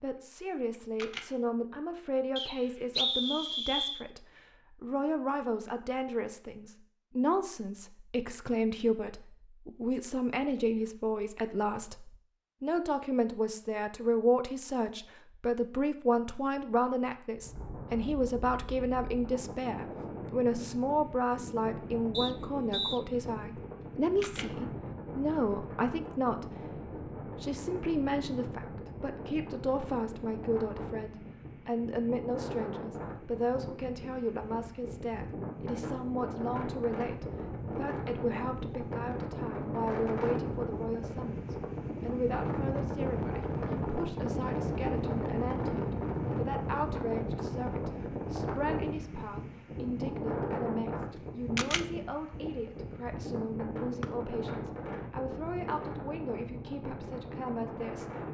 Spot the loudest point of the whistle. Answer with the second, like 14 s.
3 s.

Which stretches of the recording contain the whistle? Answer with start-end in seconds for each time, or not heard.
2.4-4.0, 22.1-23.0, 54.0-54.7.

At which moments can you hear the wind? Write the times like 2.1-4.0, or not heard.
17.4-58.2.